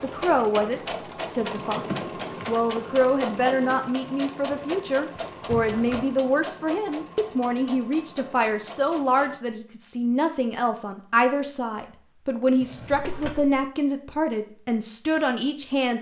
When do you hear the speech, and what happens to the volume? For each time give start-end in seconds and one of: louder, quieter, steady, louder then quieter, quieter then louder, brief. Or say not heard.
0.0-15.9 steady.